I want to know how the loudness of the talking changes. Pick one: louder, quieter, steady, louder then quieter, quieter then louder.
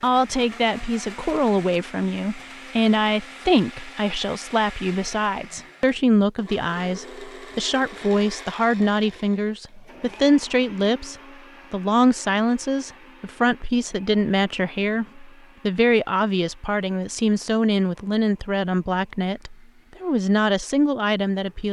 steady.